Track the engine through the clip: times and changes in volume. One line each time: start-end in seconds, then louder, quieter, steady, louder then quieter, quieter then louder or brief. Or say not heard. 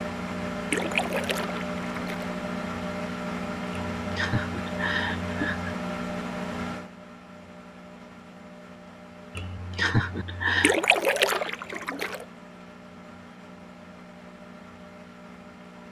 0.0-15.8 quieter.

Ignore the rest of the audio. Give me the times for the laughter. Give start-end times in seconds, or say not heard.
4.0-5.8, 9.3-10.8.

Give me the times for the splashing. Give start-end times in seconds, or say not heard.
0.7-2.3, 10.6-12.2.